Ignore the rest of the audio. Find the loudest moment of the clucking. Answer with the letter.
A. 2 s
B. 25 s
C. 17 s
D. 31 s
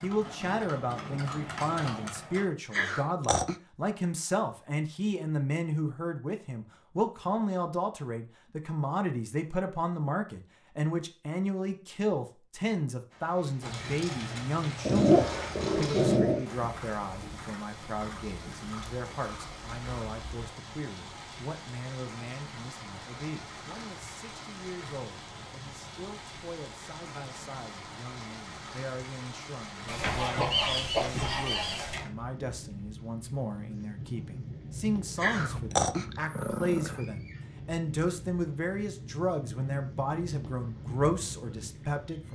D.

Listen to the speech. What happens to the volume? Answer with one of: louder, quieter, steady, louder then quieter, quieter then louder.
quieter then louder.